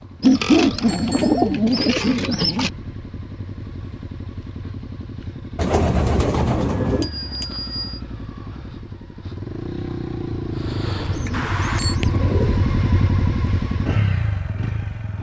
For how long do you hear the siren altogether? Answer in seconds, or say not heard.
not heard.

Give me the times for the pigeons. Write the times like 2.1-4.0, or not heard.
0.2-2.7, 5.5-7.1, 11.0-12.6.